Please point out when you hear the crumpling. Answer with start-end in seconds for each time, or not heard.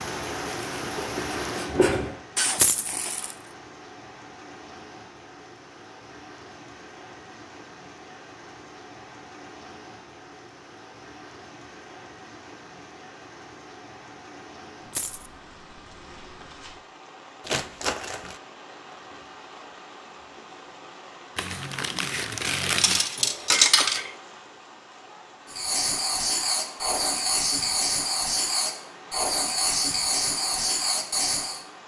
2.4-3.4, 17.4-18.4, 21.4-23.0.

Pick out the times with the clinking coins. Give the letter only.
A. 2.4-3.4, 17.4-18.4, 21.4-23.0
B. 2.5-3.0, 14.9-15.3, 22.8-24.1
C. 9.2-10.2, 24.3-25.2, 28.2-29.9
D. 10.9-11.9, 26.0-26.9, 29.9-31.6
B.